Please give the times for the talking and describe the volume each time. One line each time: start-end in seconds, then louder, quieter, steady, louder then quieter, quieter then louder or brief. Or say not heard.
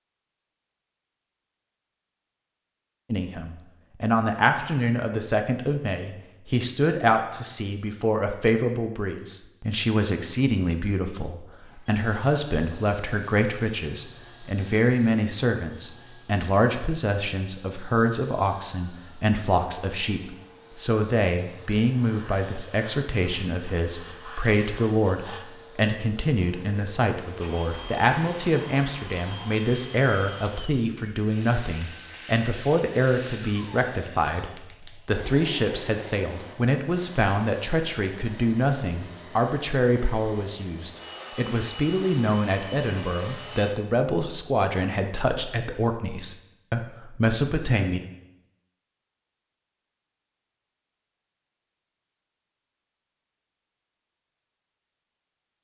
3.1-48.0 steady.